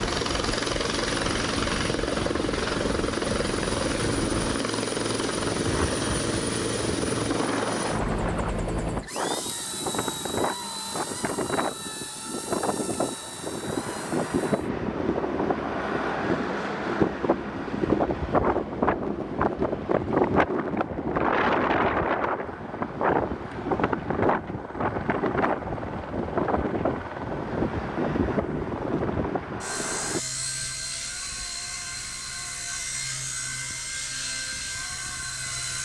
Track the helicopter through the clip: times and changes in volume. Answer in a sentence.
You can hear the helicopter from 0.0 to 35.7 s, getting quieter.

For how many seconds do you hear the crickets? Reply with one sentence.
The crickets can't be heard in this clip.